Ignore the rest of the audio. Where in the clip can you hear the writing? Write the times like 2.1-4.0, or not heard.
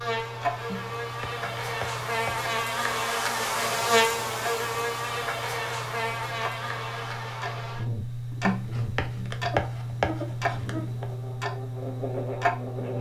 0.7-2.5, 8.4-11.1.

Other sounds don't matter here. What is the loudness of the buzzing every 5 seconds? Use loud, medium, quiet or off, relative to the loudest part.
loud, medium, medium.